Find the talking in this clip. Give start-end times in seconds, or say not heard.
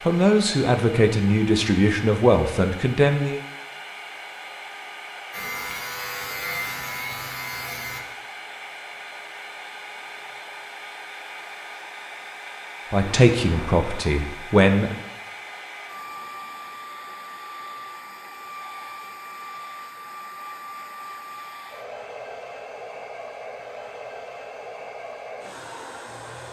0.1-3.4, 12.9-14.9.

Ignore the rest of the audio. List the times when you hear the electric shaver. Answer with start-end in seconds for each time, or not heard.
5.3-8.0.